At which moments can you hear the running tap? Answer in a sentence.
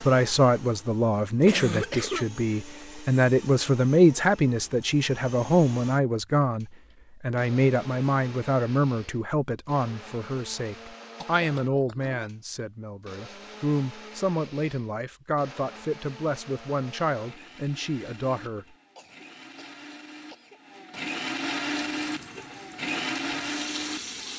The running tap can be heard from 21.6 to 24.3 s.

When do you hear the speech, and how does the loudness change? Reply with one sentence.
You can hear the speech from 0.0 to 18.6 s, getting quieter.